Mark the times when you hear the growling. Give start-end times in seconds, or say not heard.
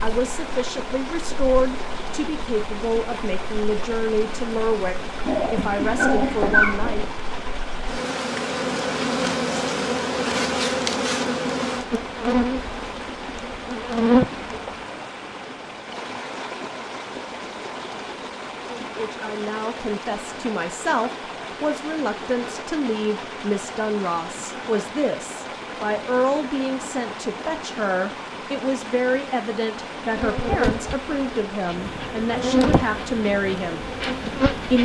5.2-7.0.